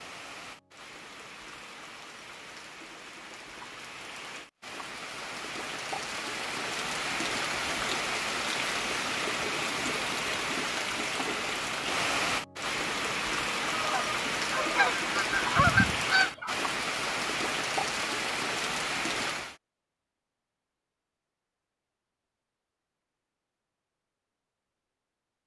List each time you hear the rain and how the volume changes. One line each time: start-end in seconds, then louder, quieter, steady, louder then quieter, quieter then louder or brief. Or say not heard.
0.0-19.6 louder.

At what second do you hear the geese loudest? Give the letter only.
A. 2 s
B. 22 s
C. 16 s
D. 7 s
C.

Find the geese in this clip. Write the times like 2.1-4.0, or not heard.
13.7-16.6.